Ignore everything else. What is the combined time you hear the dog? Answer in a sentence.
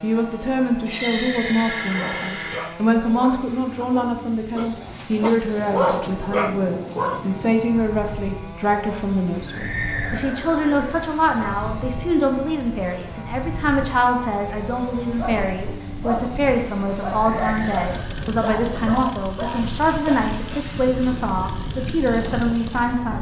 You can hear the dog for 11 seconds altogether.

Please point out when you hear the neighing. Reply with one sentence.
The neighing can be heard from 0.8 to 2.6 s, from 9.4 to 10.9 s and from 17.2 to 18.4 s.